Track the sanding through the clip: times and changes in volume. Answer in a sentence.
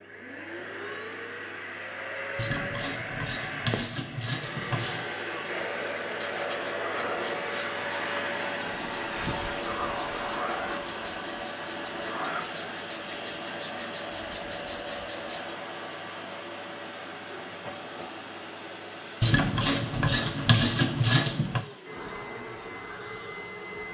The sanding can be heard from 6.0 to 15.6 s, at a steady volume.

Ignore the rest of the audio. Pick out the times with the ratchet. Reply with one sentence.
You can hear the ratchet from 2.4 to 5.0 s, from 8.7 to 10.4 s and from 19.2 to 21.6 s.